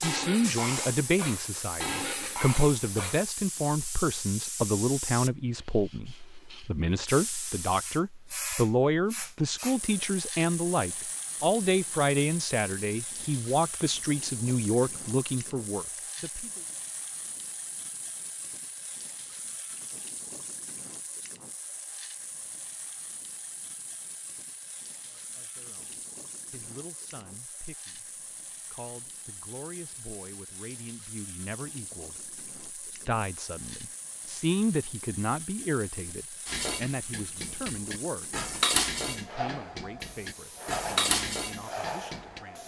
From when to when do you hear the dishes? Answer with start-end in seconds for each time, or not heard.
0.0-3.2, 36.5-42.4.